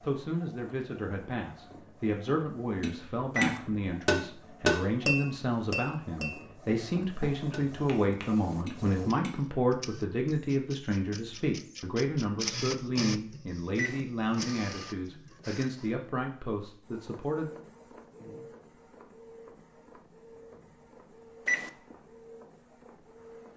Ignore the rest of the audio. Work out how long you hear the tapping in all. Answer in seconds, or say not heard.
7 s.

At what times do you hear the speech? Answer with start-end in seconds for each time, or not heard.
0.0-17.5.